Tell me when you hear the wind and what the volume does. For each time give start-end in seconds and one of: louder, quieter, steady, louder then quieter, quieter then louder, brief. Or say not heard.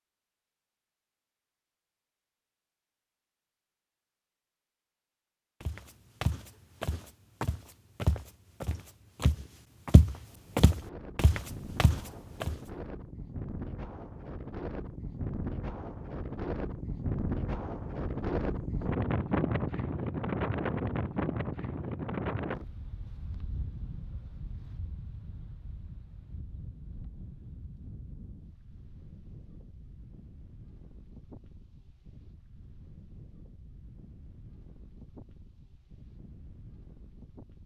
10.2-37.6 louder then quieter.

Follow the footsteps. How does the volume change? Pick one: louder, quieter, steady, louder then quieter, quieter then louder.
louder then quieter.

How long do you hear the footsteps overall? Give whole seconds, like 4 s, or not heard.
7 s.